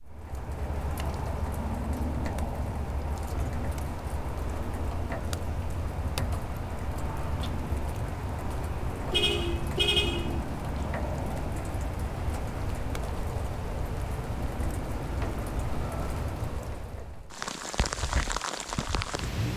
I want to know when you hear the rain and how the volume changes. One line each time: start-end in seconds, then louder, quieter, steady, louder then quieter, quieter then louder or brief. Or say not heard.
0.0-19.5 steady.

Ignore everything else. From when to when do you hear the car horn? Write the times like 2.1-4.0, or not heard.
9.1-10.4.